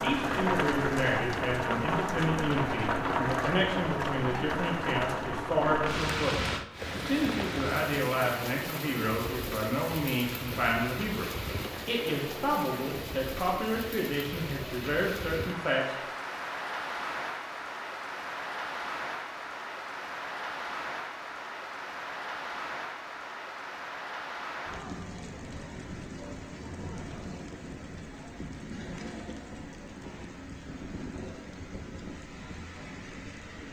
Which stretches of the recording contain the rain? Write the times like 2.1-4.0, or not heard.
0.0-33.6.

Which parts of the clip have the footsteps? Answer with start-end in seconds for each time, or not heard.
not heard.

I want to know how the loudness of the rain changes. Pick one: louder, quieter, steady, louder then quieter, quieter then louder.
quieter.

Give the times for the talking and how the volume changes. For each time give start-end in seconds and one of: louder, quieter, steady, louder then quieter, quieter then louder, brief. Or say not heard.
0.0-15.9 steady.